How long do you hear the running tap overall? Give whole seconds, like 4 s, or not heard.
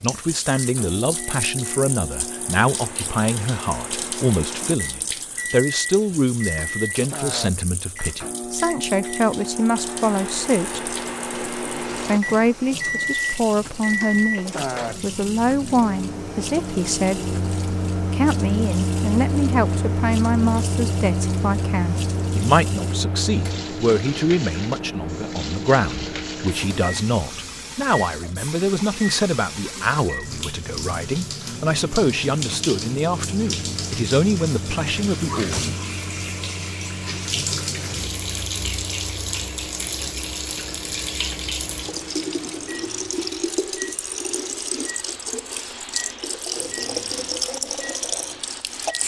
49 s.